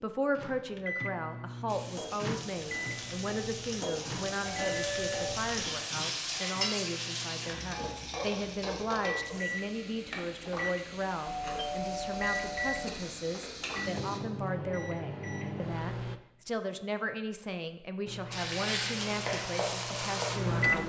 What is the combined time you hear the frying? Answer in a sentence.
The frying can be heard for 15 seconds in total.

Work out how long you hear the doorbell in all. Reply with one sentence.
You can hear the doorbell for 3 seconds altogether.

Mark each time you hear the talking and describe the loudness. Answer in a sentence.
The talking can be heard from 0.0 to 20.8 s, at a steady volume.